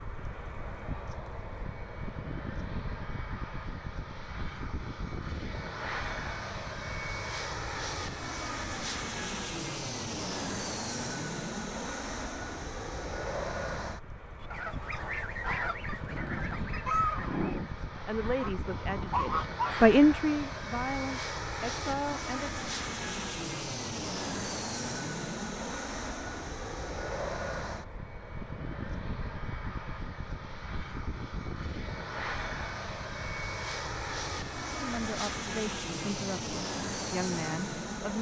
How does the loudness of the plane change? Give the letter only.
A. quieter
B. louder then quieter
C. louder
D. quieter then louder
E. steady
E.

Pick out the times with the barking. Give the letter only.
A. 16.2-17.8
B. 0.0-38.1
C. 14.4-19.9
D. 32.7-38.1
A.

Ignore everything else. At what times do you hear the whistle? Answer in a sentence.
You can't hear the whistle here.